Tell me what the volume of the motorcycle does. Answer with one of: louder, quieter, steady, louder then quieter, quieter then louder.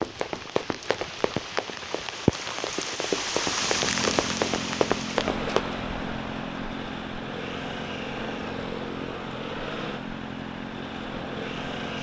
steady.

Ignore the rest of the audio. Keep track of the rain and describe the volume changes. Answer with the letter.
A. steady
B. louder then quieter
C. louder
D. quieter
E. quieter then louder
D.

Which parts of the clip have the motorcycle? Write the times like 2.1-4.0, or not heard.
3.5-11.9.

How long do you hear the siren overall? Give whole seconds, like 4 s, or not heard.
not heard.